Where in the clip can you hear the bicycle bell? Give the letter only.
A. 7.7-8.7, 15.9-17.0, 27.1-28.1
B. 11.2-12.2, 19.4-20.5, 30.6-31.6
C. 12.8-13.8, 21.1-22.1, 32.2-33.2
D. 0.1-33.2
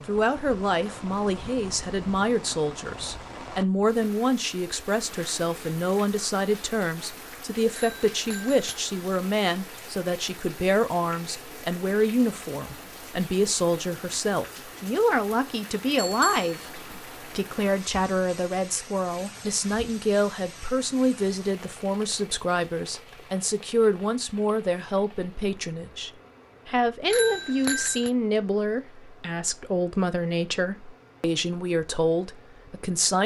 A.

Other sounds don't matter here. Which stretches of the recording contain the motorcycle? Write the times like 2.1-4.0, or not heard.
not heard.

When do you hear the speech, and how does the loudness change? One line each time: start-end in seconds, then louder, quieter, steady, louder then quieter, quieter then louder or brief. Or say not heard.
0.1-33.2 steady.